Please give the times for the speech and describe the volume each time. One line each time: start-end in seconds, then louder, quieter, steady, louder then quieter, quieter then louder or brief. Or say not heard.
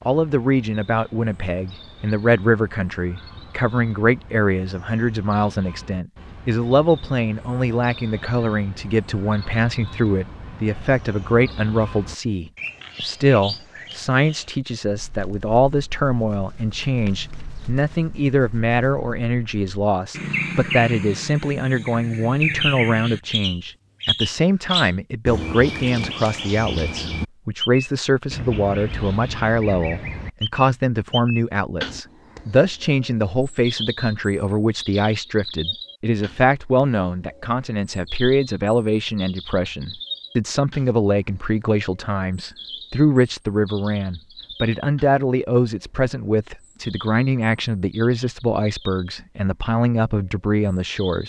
0.1-51.2 steady.